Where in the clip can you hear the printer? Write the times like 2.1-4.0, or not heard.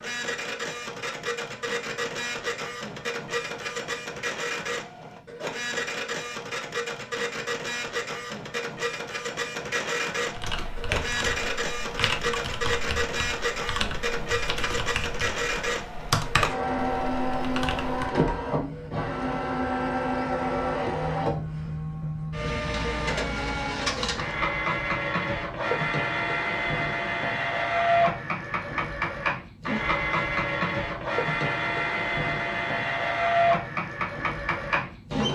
0.0-35.3.